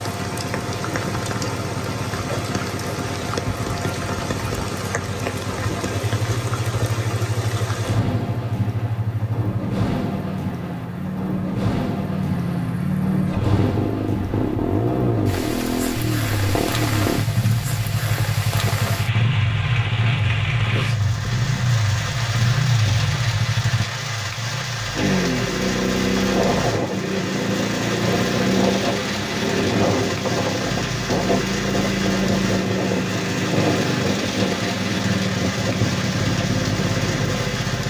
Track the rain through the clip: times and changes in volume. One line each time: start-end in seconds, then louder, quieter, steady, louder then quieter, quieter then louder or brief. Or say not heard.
0.0-37.8 steady.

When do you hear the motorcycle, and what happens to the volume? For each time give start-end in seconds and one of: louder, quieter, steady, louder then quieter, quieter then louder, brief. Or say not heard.
0.0-37.8 louder.